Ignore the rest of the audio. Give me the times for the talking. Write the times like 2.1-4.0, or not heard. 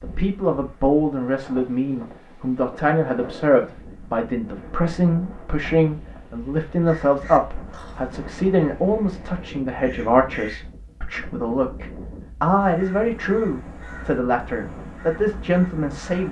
0.0-16.2.